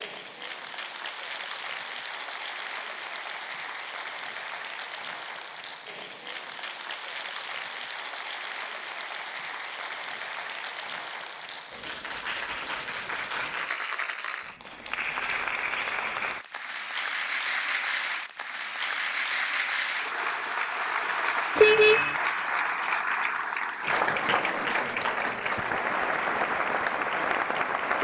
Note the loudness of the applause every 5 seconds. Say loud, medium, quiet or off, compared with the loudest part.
medium, medium, medium, loud, loud, loud.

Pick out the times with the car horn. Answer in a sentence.
You can hear the car horn from 21.6 to 22.1 s.